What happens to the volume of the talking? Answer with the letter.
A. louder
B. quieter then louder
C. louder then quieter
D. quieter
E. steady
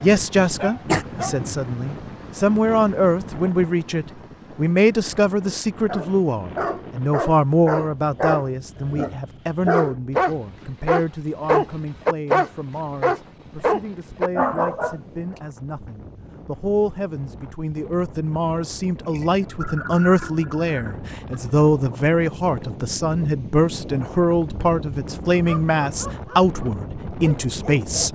B.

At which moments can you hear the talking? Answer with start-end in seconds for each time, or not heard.
0.0-28.0.